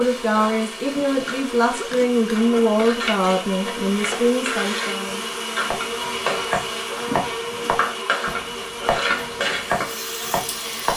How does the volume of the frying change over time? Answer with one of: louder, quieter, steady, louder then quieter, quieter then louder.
louder.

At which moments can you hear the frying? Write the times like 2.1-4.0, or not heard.
0.0-10.9.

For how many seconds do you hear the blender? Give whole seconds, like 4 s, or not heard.
11 s.